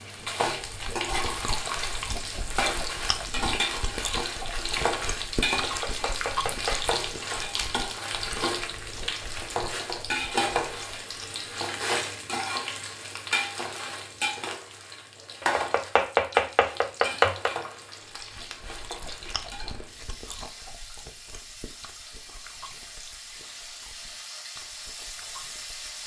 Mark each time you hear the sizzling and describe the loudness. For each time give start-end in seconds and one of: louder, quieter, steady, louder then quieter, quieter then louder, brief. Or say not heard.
0.0-26.0 quieter.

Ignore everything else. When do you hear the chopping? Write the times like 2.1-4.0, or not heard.
5.6-7.0, 15.4-17.5.